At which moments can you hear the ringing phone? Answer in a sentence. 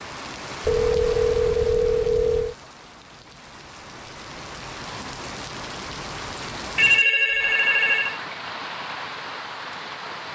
You can hear the ringing phone from 0.7 to 2.5 s and from 6.8 to 8.2 s.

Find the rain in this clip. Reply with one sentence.
The rain can be heard from 0.0 to 10.3 s.